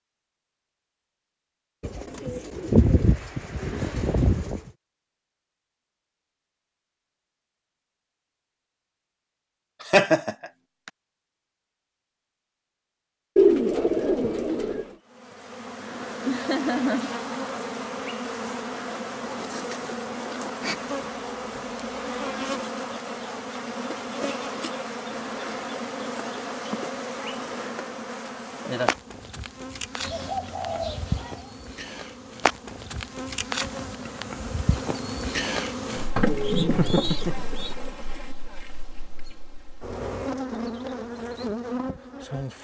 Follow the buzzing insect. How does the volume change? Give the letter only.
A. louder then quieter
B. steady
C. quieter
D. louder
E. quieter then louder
B.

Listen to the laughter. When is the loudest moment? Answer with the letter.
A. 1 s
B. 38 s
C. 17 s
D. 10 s
D.